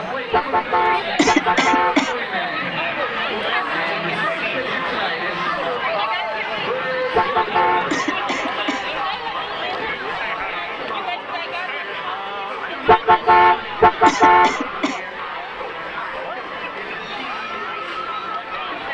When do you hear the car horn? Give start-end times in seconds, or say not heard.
0.3-2.1, 7.2-7.8, 12.8-14.8.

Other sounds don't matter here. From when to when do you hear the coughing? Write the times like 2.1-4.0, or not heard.
1.1-2.1, 7.9-8.8, 14.1-15.0.